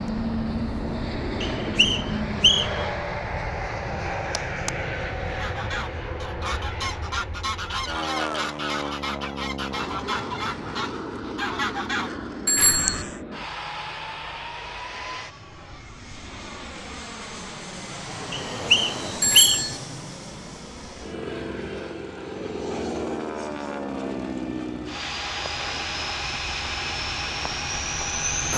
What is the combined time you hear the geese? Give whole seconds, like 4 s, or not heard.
8 s.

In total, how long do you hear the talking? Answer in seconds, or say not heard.
not heard.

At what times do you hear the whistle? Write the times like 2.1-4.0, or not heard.
1.4-2.9, 18.3-19.6.